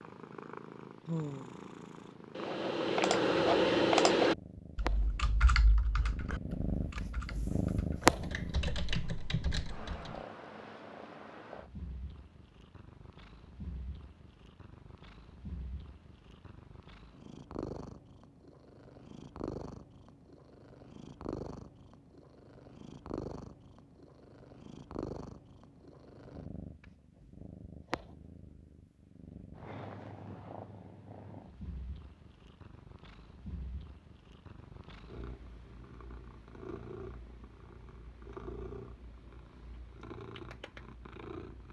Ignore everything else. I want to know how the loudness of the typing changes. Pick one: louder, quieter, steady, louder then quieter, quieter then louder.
quieter then louder.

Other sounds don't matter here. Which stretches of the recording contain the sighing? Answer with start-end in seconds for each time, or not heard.
1.1-1.6.